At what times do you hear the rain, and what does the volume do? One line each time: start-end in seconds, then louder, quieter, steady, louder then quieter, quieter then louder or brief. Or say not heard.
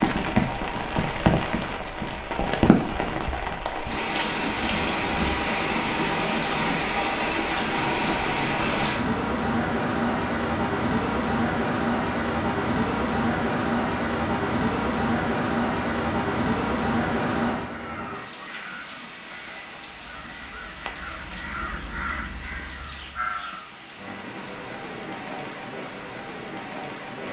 0.0-27.2 quieter.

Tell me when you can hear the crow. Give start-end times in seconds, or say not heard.
17.6-23.8.